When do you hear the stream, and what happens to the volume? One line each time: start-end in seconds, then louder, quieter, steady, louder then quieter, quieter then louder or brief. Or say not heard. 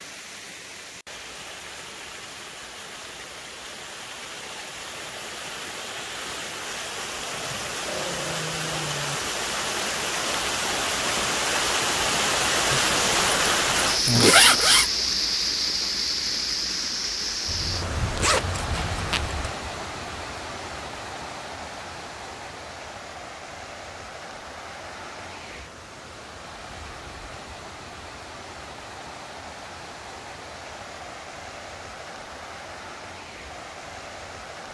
0.0-34.7 louder then quieter.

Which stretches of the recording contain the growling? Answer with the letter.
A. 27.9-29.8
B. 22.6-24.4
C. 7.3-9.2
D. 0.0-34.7
C.